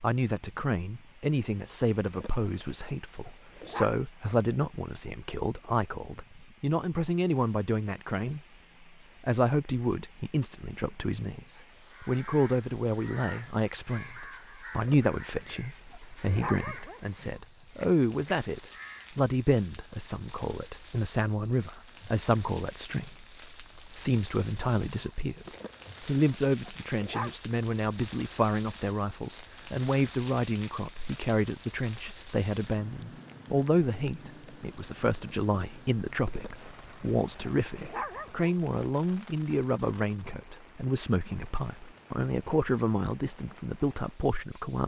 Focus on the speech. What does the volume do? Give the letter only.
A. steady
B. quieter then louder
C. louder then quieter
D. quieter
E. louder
A.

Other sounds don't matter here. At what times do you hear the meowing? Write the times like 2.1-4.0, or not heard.
not heard.